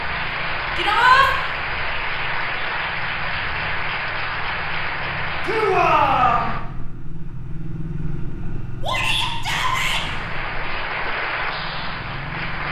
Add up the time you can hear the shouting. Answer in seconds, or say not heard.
3 s.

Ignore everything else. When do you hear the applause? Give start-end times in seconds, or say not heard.
0.0-6.6, 9.5-12.6.